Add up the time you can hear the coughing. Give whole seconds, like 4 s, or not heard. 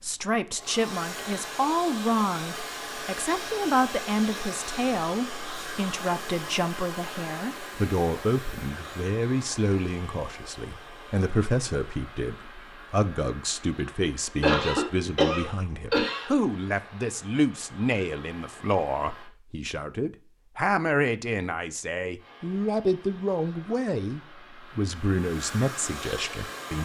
2 s.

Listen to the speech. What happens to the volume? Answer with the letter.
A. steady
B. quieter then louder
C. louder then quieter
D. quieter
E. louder
A.